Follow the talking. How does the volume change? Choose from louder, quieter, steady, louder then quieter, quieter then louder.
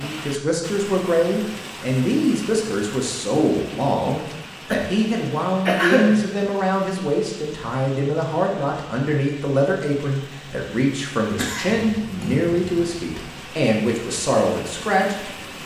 steady.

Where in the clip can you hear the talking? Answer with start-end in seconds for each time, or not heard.
0.0-15.6.